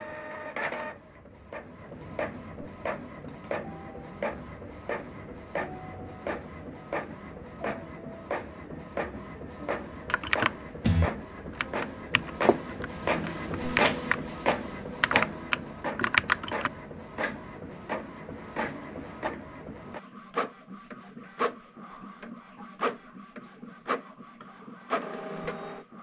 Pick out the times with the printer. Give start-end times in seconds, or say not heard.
0.0-25.9.